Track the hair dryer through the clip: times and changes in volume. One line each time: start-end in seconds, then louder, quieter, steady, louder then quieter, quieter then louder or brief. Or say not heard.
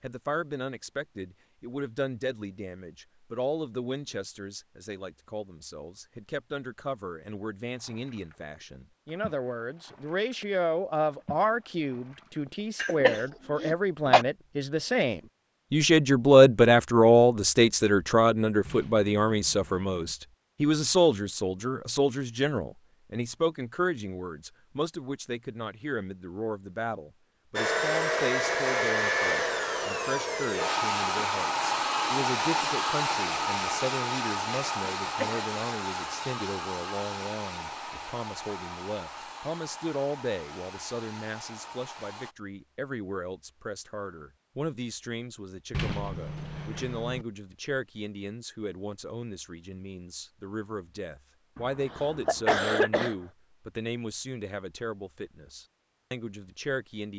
27.6-42.4 quieter.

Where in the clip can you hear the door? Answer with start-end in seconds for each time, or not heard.
18.6-20.1, 45.7-47.2.